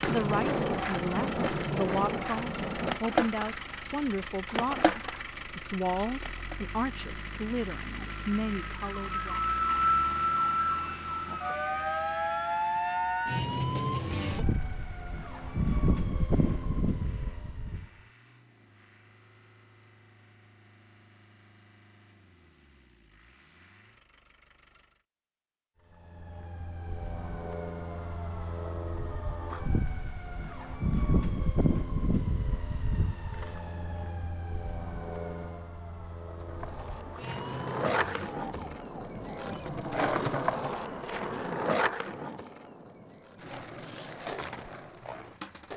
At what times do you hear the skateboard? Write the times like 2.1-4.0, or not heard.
0.0-6.6, 36.3-45.7.